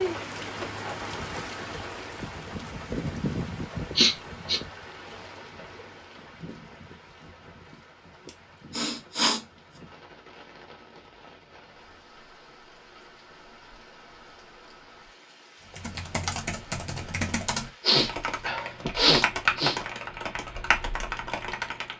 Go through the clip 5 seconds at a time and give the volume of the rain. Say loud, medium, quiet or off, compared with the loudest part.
loud, quiet, quiet, quiet, quiet.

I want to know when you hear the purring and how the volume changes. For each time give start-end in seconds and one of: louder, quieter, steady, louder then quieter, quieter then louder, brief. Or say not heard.
not heard.